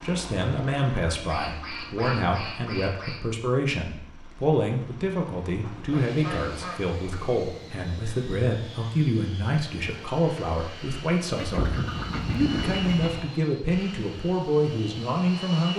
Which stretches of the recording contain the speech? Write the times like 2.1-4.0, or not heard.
0.0-15.7.